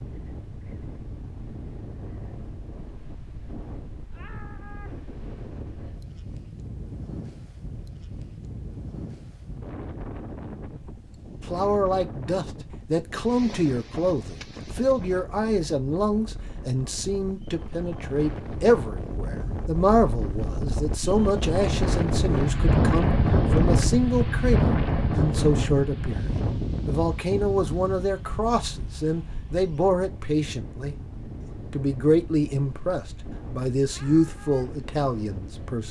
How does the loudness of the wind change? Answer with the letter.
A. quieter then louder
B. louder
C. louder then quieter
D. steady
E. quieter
C.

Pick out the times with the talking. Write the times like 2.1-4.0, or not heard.
11.4-30.9, 31.7-35.8.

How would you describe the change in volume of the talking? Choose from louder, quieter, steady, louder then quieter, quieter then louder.
steady.